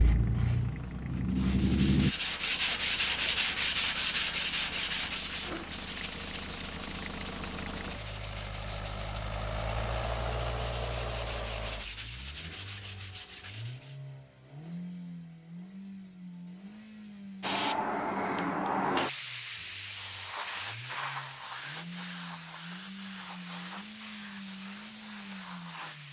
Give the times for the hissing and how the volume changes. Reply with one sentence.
You can hear the hissing briefly from 0.0 to 2.1 s; and from 17.4 to 26.0 s, getting quieter.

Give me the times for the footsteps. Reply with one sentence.
The footsteps can't be heard in this clip.